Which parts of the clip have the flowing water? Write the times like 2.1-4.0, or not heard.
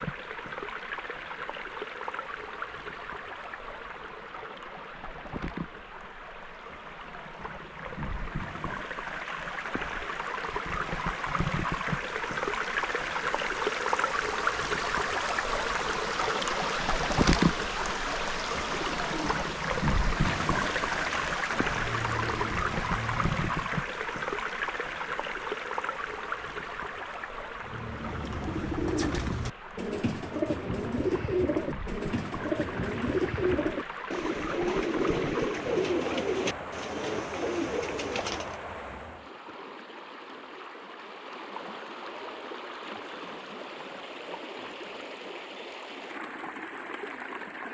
0.0-47.6.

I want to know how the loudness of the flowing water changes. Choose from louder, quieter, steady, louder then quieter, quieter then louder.
louder then quieter.